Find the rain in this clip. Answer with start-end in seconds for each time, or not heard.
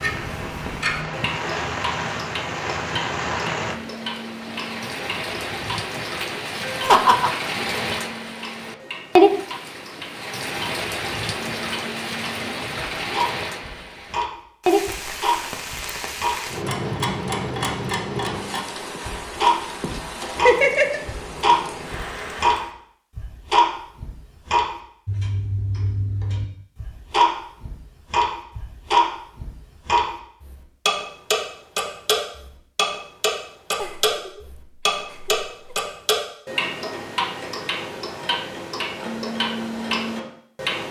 0.0-22.8.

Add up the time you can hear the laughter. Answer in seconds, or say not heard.
4 s.